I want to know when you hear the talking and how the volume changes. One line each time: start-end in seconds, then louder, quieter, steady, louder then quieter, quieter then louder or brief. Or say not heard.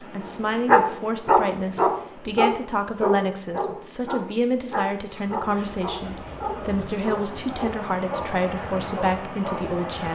0.0-10.1 steady.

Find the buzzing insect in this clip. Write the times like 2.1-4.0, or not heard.
not heard.